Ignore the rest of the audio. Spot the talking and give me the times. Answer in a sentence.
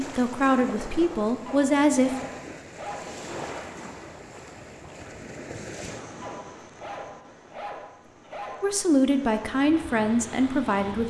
You can hear the talking from 0.0 to 2.1 s and from 8.6 to 11.0 s.